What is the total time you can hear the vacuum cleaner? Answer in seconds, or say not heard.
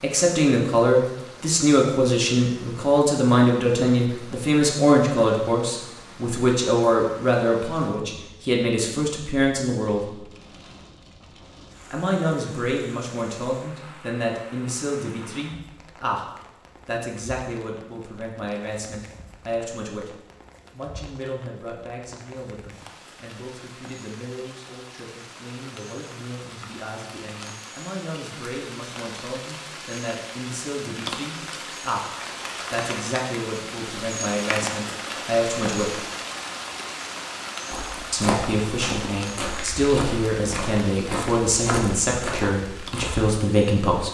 not heard.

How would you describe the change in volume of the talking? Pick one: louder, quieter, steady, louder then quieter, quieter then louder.
quieter then louder.